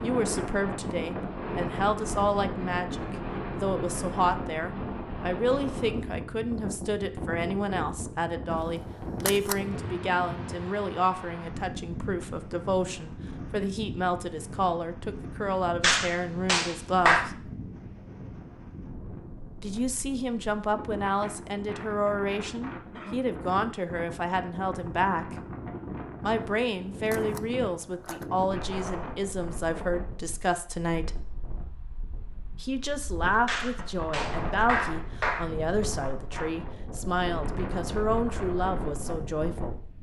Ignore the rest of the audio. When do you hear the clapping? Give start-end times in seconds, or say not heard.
15.8-17.3, 33.5-35.5.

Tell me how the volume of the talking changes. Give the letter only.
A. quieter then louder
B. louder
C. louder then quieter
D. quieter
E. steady
E.